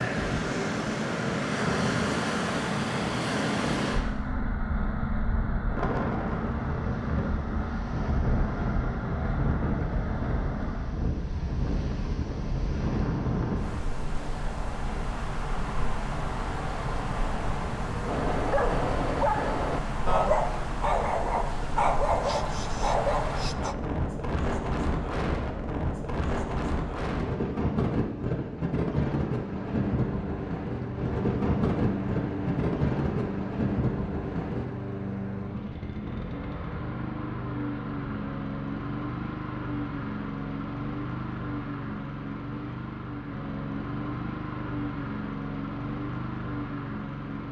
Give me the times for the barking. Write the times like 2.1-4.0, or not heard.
18.0-23.8.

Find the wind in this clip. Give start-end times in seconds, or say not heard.
0.0-34.7.